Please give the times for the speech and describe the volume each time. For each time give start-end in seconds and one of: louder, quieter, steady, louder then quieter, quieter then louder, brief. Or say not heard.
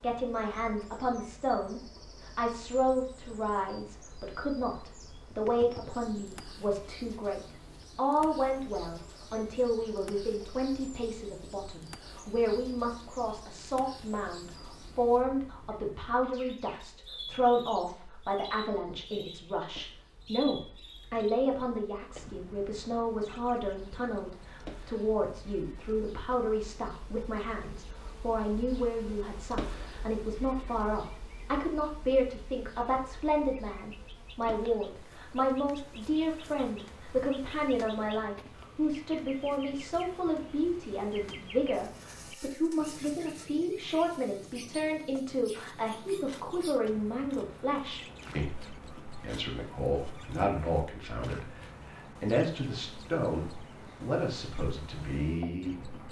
0.0-56.0 steady.